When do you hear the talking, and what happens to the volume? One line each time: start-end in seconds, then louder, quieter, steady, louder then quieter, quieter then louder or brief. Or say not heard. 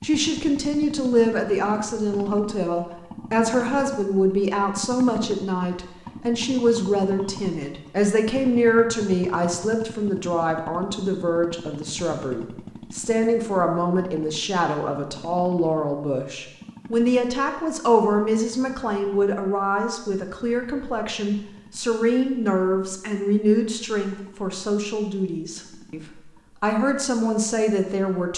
0.0-26.0 steady
26.6-28.3 brief.